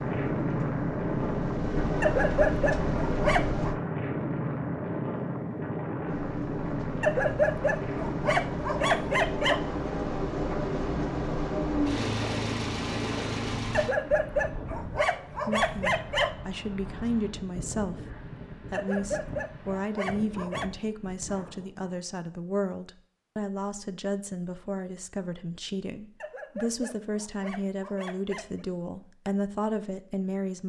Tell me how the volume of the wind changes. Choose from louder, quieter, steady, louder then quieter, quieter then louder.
quieter.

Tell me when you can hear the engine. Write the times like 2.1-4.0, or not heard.
0.0-3.8, 6.0-13.9.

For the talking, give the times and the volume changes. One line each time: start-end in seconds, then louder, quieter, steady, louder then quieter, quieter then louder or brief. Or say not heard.
15.4-30.6 steady.